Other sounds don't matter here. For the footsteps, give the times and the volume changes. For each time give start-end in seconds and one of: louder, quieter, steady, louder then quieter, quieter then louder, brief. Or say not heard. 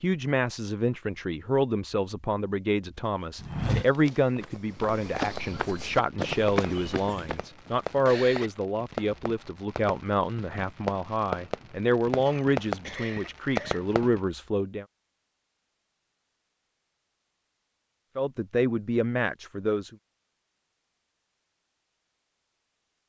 3.0-7.5 quieter then louder.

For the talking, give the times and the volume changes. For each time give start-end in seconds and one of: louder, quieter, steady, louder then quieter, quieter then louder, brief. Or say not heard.
0.0-14.8 steady
18.1-19.9 brief.